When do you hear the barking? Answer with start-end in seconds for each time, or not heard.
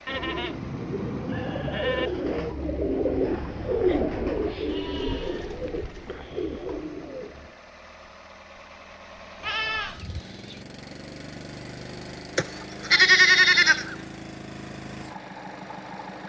not heard.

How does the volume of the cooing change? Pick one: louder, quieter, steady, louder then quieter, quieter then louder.
louder then quieter.